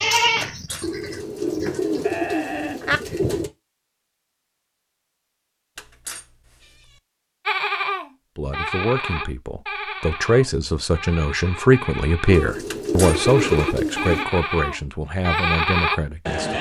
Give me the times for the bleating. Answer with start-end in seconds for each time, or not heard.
0.0-3.2, 7.5-16.5.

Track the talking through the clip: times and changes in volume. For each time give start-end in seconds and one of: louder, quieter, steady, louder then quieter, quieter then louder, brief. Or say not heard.
8.3-16.5 louder then quieter.